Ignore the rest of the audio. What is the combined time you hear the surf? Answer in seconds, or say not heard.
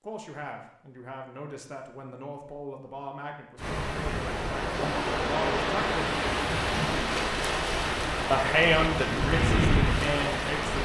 7 s.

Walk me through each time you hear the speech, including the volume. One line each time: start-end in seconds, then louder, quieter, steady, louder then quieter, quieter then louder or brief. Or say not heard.
0.0-6.2 louder
8.3-10.8 brief.